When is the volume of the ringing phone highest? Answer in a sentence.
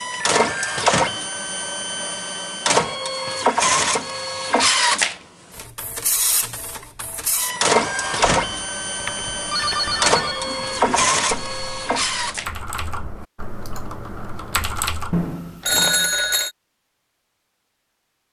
The volume of the ringing phone peaks at 16 seconds.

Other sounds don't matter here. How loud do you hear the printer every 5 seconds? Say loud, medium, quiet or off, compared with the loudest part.
loud, loud, loud, off.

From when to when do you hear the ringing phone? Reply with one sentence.
You can hear the ringing phone from 0.4 to 0.9 s, from 7.8 to 10.4 s and from 15.1 to 16.5 s.